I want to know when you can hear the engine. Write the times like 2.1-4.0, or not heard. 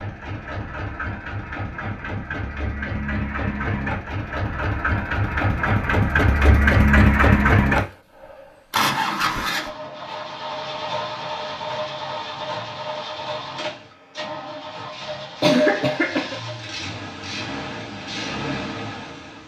0.0-19.4.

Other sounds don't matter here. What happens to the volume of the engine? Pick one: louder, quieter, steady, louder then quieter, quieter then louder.
louder then quieter.